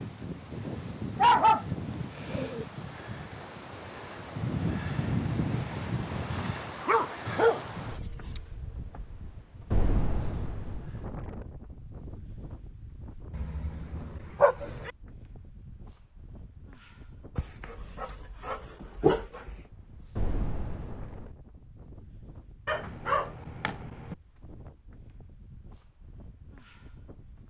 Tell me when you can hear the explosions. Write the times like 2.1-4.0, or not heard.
9.7-10.9, 20.1-21.4.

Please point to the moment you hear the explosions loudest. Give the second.
10 s.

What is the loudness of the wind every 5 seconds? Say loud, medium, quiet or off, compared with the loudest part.
loud, loud, medium, quiet, quiet, quiet.